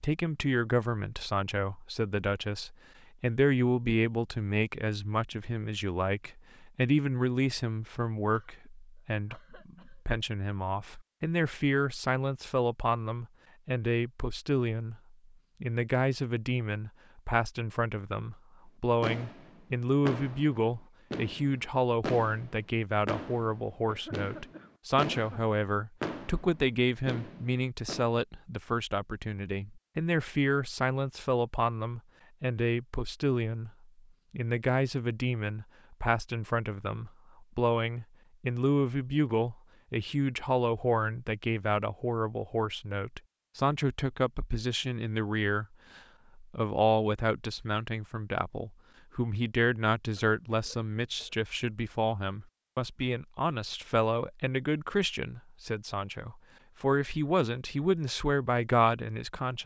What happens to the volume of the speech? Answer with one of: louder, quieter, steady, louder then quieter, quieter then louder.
steady.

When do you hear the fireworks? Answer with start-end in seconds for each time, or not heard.
19.0-28.1.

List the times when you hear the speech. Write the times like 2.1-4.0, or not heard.
0.0-59.6.